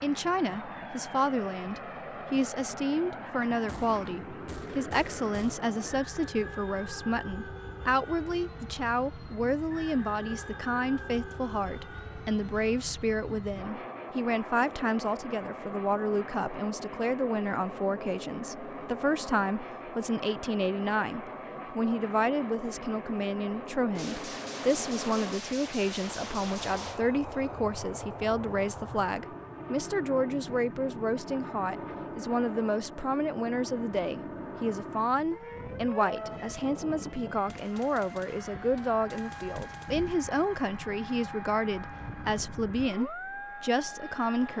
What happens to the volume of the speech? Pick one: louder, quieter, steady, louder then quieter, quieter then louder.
steady.